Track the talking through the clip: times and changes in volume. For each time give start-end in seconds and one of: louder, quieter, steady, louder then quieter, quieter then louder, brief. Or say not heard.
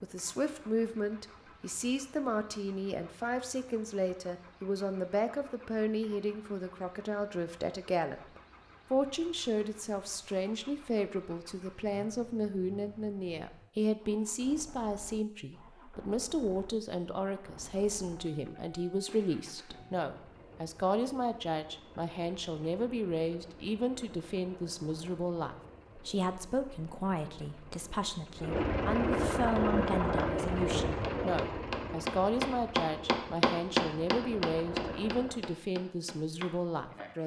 0.0-37.2 steady.